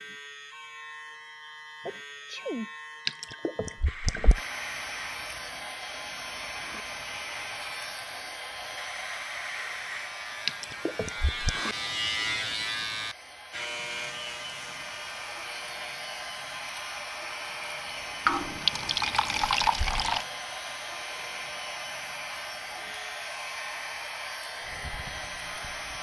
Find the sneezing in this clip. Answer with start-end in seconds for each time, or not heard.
1.9-2.7.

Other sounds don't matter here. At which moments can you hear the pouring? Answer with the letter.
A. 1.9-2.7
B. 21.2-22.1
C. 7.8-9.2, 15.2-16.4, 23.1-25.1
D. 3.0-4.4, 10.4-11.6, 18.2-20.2
D.